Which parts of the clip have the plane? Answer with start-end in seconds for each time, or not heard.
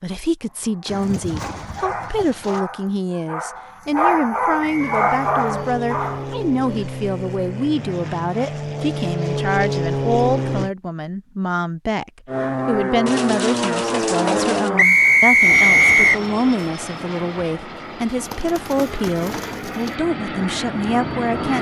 4.7-10.7, 12.2-21.5.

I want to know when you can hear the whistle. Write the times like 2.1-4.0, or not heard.
4.6-5.0, 14.8-16.2.